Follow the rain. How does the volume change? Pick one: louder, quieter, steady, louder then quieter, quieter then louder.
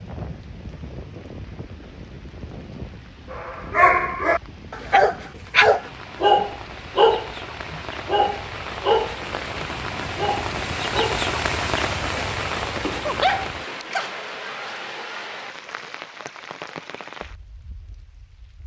louder then quieter.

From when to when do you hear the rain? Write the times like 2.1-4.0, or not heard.
0.0-18.6.